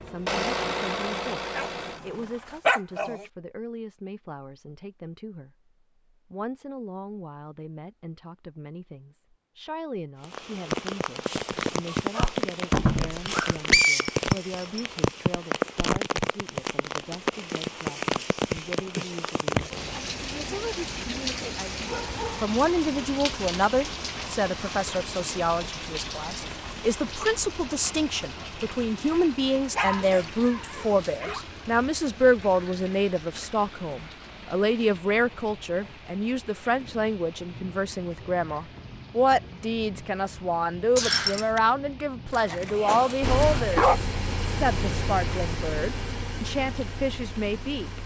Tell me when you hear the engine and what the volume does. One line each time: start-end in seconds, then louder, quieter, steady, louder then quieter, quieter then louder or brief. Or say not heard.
0.0-2.6 brief
43.2-48.0 quieter.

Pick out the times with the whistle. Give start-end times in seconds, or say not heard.
13.2-14.8, 41.0-41.6.